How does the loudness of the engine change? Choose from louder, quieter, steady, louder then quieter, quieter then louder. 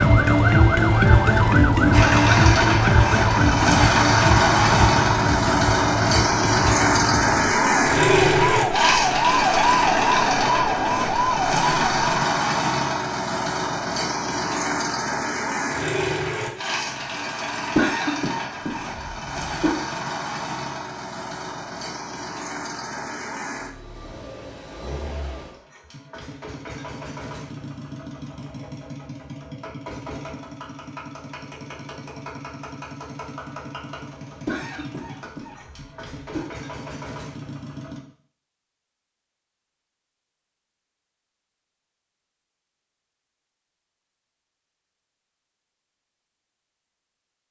quieter.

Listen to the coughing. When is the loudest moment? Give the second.
18 s.